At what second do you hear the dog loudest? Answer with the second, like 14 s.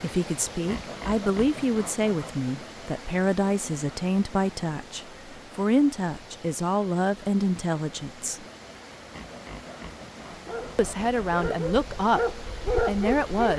13 s.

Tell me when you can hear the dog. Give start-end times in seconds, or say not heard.
10.3-13.5.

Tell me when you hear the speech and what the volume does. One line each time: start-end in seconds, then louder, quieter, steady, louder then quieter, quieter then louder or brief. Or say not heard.
0.0-8.4 steady
10.8-13.5 brief.